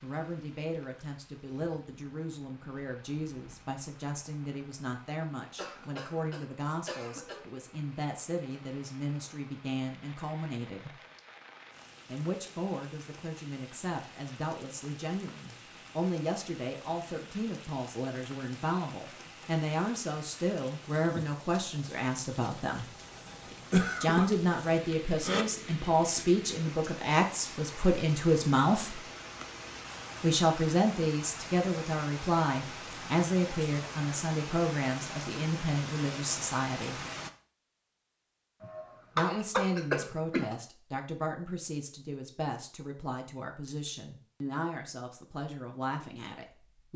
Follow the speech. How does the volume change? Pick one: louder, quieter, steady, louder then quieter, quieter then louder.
louder then quieter.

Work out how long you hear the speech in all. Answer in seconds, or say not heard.
41 s.